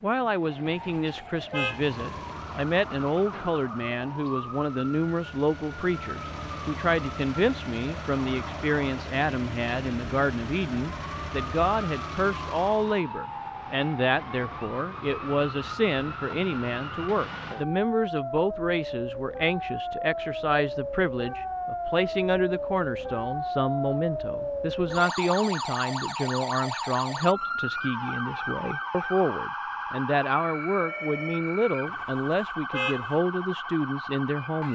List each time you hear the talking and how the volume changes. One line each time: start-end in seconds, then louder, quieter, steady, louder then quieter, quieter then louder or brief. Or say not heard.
0.0-34.7 steady.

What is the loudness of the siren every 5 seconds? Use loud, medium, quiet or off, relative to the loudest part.
medium, medium, medium, loud, loud, loud, loud.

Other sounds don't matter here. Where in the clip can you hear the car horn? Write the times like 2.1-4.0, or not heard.
0.7-1.9, 31.9-33.2.